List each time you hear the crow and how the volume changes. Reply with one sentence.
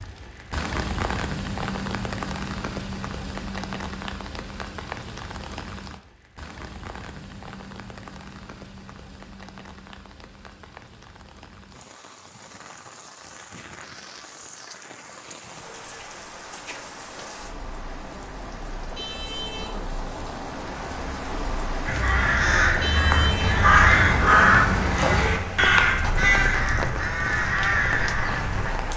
You can hear the crow from 21.9 to 28.8 s, getting louder then quieter.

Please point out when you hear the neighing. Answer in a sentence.
The neighing can't be heard in this clip.